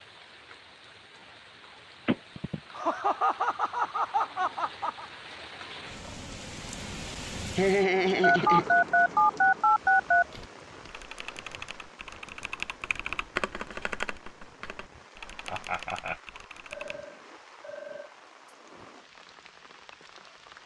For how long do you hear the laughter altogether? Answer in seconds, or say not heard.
4 s.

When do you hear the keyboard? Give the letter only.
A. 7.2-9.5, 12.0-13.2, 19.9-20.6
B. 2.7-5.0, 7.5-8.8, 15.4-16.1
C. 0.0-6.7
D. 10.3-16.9
D.